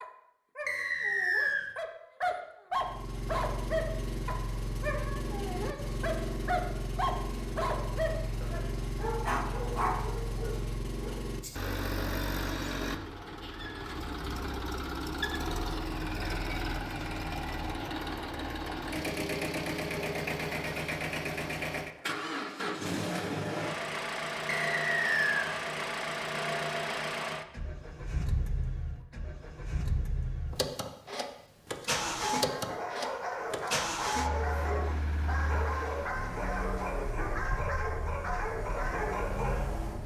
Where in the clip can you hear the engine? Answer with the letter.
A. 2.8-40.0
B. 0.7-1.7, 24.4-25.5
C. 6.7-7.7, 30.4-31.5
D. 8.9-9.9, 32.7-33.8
A.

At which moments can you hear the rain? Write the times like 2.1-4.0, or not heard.
not heard.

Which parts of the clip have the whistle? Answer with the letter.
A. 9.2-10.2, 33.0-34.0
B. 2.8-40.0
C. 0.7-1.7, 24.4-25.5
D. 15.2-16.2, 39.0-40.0
C.